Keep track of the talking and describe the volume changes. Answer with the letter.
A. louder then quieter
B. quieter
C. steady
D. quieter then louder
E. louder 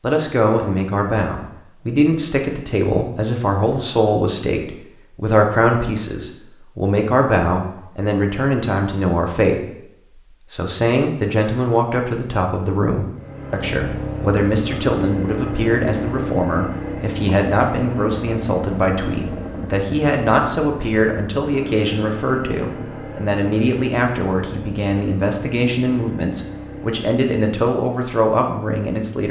C.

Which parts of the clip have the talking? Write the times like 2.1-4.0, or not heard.
0.0-29.2.